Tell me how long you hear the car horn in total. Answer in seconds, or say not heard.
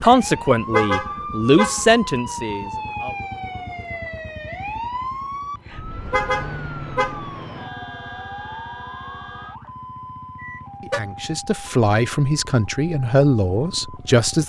3 s.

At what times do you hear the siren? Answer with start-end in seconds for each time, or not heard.
0.0-14.4.